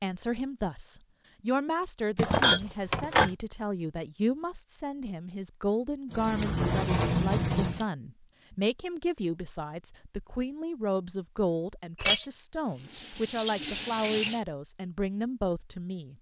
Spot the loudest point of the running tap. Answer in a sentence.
The volume of the running tap peaks at 7 seconds.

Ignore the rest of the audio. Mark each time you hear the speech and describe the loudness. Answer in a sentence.
The speech can be heard from 0.0 to 16.1 s, at a steady volume.